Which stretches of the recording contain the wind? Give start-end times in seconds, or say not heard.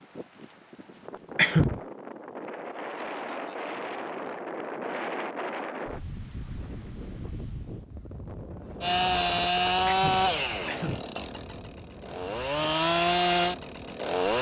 0.0-14.3.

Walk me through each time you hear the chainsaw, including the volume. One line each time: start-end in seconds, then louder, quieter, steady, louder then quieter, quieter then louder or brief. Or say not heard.
8.8-14.3 quieter then louder.